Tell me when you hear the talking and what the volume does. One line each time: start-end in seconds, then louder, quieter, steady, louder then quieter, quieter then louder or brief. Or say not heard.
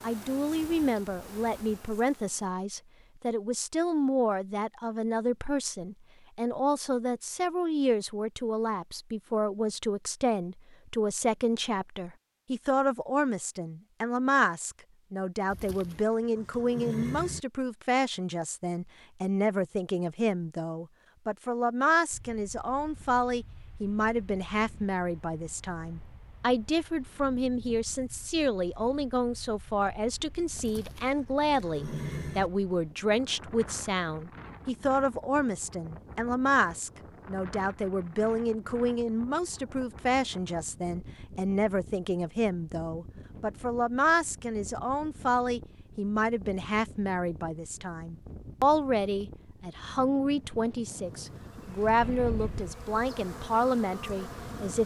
0.0-54.8 steady.